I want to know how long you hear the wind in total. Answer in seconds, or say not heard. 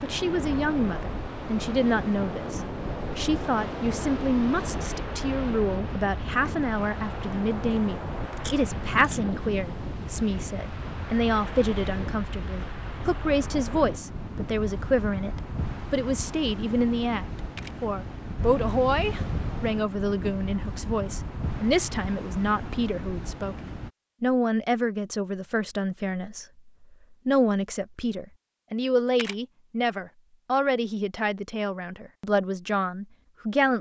24 s.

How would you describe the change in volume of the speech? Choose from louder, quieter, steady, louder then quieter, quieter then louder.
steady.